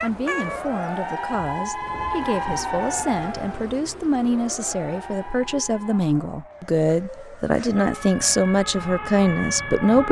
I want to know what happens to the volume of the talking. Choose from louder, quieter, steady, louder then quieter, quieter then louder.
louder.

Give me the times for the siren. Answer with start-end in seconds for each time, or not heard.
0.0-10.0.